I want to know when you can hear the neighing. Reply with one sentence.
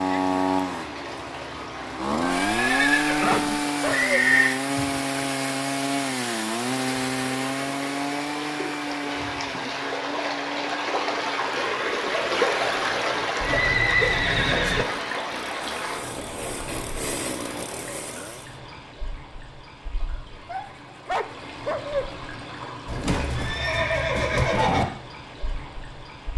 The neighing can be heard from 2.2 to 4.5 s, from 13.4 to 14.8 s and from 22.9 to 24.9 s.